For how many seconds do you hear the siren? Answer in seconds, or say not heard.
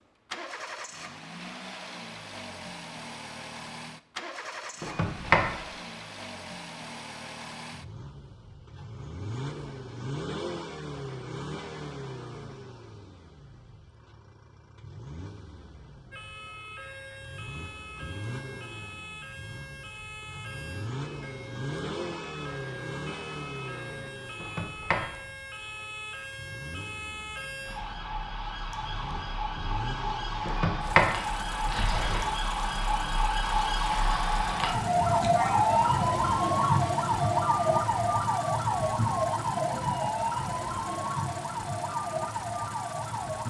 27 s.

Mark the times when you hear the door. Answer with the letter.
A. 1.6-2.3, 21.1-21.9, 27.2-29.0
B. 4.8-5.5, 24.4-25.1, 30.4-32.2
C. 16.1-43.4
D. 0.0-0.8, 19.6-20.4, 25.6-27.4
B.